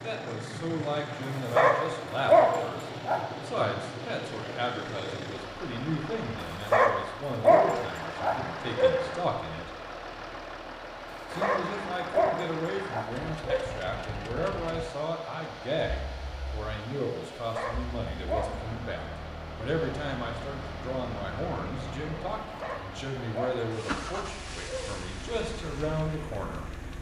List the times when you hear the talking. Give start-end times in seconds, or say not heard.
0.0-9.7, 11.3-26.7.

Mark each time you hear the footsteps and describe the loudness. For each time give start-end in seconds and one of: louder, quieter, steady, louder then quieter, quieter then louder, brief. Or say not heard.
not heard.